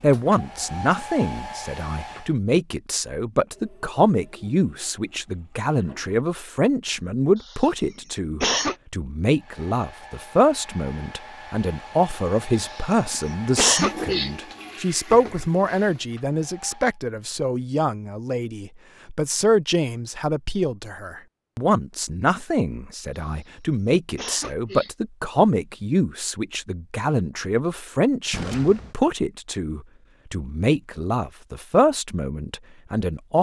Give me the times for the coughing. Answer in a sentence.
The coughing can be heard from 7.4 to 8.8 s, from 12.6 to 14.3 s and from 23.1 to 24.9 s.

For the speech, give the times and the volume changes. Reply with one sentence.
You can hear the speech from 0.0 to 33.3 s, at a steady volume.